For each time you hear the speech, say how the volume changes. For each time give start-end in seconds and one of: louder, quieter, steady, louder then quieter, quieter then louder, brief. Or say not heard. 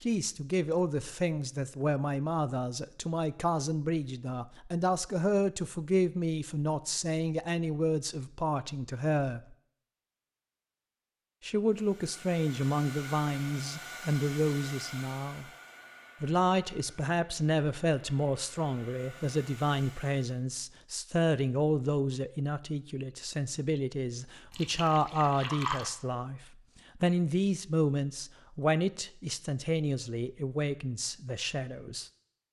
0.0-9.6 steady
11.4-15.4 steady
16.2-32.1 steady.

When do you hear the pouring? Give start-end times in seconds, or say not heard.
24.5-25.9.